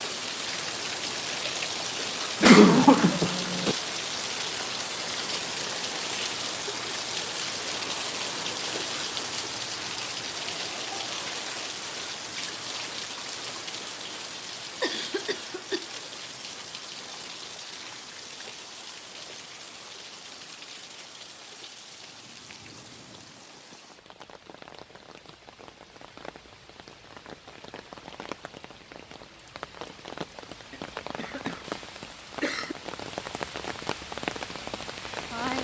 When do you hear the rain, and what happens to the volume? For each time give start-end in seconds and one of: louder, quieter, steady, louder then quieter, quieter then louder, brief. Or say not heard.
0.0-35.5 quieter then louder.